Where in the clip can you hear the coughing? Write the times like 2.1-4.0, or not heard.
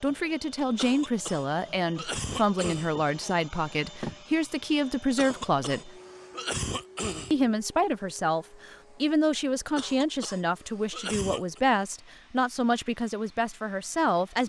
0.8-2.9, 5.2-7.5, 9.8-11.6.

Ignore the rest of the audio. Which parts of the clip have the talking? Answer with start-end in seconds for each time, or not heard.
0.0-5.9, 7.3-14.4.